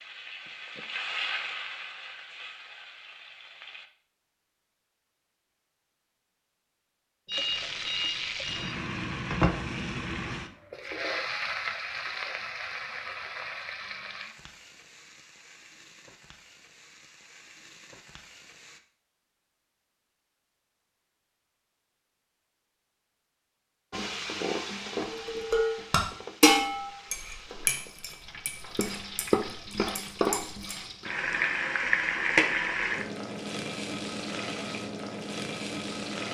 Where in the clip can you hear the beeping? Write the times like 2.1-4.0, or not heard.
7.2-8.8.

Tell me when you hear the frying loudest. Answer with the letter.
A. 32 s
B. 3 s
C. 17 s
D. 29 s
A.